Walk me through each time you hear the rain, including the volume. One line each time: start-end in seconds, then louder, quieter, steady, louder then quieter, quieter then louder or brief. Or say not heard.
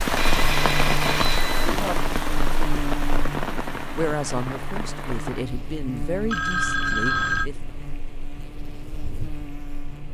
0.0-10.0 quieter.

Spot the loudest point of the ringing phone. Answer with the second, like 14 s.
7 s.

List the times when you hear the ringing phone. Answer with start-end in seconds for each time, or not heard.
0.1-1.7, 6.2-7.5.